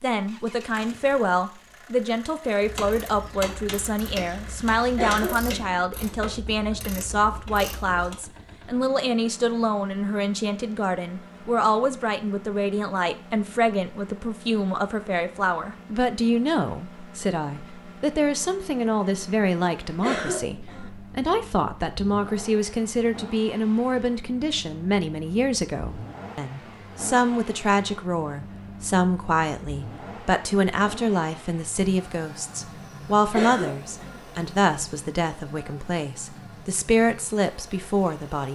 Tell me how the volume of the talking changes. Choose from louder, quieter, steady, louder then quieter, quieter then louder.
steady.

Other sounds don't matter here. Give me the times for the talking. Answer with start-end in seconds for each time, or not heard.
0.0-38.4.